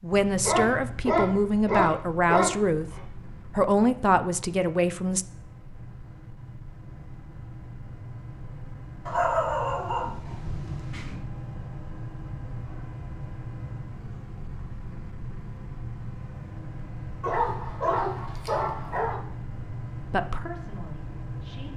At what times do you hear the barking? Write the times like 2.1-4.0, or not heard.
0.4-3.0, 9.1-11.2, 17.2-19.2.